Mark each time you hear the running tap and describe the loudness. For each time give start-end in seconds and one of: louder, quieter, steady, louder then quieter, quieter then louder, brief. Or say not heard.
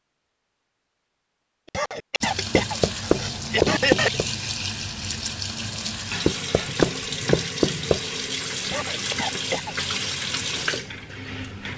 2.2-11.7 steady.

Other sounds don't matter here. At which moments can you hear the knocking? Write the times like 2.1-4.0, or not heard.
2.5-4.2, 6.2-8.0.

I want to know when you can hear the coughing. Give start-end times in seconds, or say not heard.
1.7-4.2, 8.7-9.8.